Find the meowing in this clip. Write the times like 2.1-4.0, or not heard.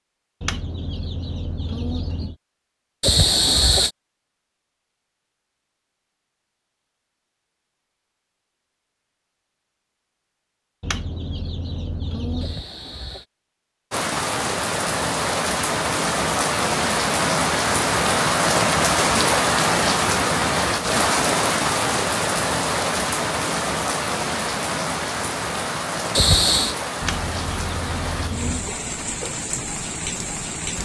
3.0-3.9, 12.4-13.2, 26.1-26.8.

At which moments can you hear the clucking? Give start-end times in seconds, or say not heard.
0.4-2.4, 10.8-12.7, 27.0-28.8.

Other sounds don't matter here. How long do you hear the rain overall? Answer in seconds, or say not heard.
17 s.